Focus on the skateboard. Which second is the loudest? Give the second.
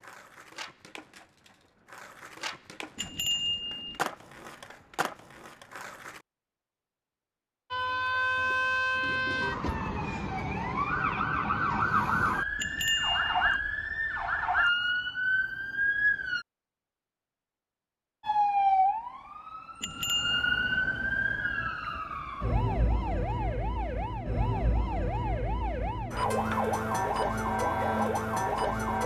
5 s.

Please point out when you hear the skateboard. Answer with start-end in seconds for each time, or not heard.
0.0-6.2.